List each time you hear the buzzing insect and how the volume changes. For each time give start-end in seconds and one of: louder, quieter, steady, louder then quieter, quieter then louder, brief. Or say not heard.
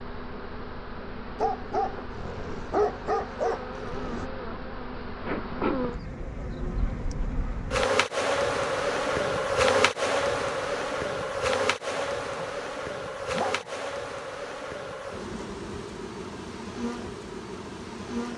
0.0-18.3 louder then quieter.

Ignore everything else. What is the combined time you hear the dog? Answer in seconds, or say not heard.
4 s.